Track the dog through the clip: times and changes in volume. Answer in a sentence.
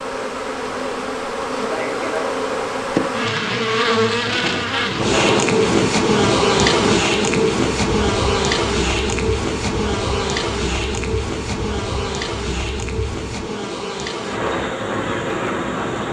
You can't hear the dog here.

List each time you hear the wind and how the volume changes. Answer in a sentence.
You can hear the wind from 4.2 to 16.0 s, getting quieter then louder.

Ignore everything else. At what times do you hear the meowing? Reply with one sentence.
The meowing can't be heard in this clip.